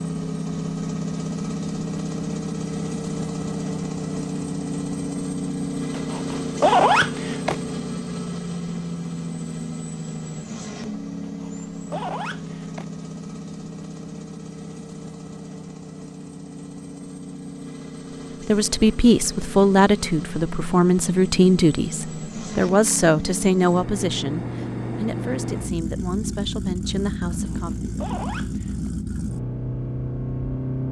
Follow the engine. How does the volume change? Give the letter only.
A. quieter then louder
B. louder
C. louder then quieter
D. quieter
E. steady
A.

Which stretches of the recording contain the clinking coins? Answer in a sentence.
The clinking coins can't be heard in this clip.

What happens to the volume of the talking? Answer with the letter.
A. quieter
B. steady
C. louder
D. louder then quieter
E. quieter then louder
A.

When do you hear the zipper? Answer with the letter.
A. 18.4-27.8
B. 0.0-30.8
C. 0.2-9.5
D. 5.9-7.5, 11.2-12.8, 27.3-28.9
D.